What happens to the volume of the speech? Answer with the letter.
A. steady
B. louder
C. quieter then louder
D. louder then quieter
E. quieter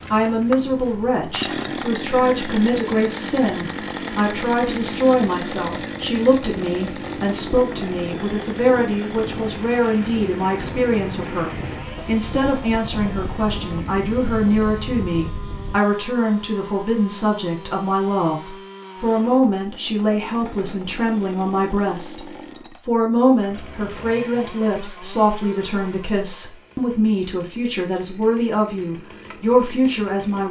A.